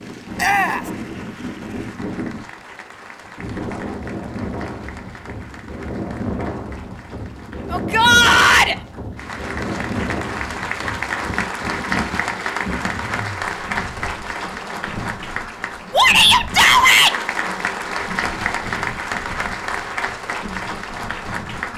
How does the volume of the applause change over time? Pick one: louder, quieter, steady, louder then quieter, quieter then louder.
louder.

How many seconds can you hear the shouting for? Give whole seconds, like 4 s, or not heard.
3 s.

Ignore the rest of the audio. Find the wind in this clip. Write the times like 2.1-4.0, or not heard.
0.0-21.7.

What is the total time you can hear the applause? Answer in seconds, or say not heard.
22 s.